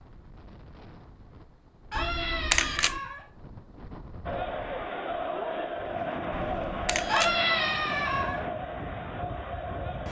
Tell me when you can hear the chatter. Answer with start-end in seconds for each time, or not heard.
4.2-10.0.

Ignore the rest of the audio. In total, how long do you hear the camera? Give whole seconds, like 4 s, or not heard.
2 s.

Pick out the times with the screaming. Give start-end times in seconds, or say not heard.
1.9-3.2, 7.0-8.4.